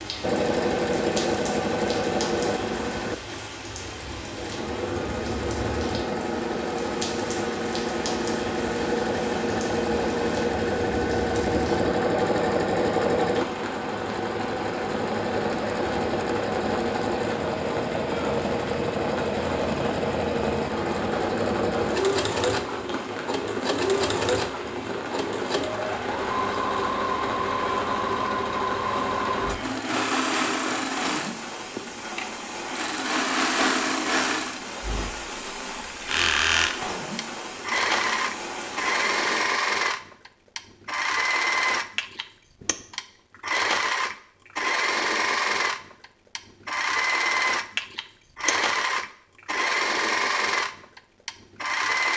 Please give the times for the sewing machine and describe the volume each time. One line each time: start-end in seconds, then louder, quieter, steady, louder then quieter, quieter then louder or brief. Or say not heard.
0.1-52.1 steady.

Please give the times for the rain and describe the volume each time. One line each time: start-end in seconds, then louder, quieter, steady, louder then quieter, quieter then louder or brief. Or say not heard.
0.0-39.5 steady.